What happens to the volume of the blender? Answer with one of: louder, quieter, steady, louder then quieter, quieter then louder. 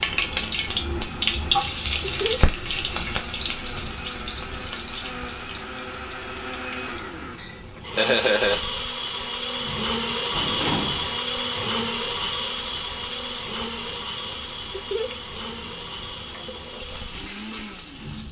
louder then quieter.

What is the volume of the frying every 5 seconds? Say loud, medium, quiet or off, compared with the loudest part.
loud, quiet, quiet, quiet.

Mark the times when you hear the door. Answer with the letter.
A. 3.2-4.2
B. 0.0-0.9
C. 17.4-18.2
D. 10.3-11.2
D.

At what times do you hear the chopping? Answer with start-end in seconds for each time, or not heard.
not heard.